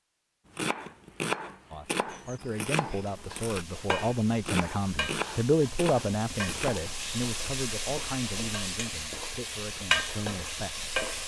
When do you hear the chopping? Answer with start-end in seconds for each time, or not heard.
0.6-7.5.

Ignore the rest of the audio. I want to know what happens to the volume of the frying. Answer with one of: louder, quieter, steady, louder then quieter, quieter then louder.
louder.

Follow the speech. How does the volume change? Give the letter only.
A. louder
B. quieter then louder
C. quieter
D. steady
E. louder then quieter
E.